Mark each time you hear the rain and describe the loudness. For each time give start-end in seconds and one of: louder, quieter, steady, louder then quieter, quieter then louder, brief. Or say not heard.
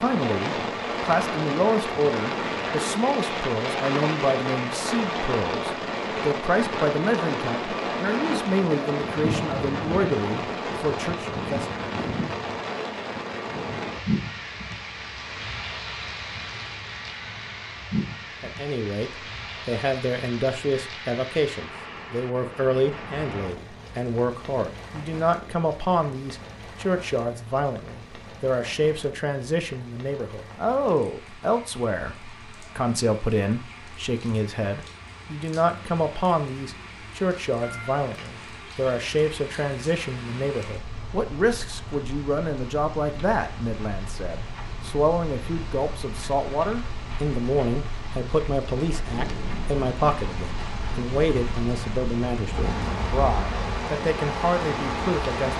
0.0-55.5 quieter then louder.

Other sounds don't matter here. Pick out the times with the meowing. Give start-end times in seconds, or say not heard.
not heard.